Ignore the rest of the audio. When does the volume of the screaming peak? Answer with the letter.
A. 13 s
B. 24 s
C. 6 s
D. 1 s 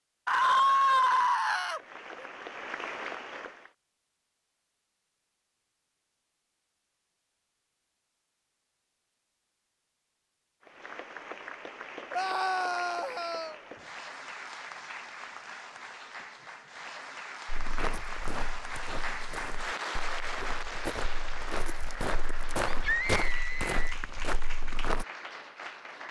D.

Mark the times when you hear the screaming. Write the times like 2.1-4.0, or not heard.
0.2-2.2, 12.1-13.6, 22.6-23.9.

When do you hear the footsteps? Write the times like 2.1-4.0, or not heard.
17.4-25.1.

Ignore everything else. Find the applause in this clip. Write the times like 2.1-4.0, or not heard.
1.7-3.8, 10.6-26.0.